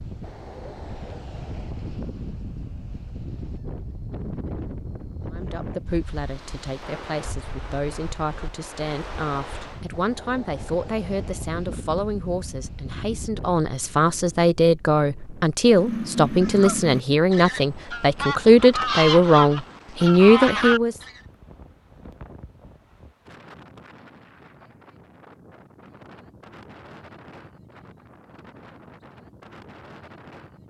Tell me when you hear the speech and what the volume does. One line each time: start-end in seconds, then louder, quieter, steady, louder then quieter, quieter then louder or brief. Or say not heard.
5.3-20.9 louder.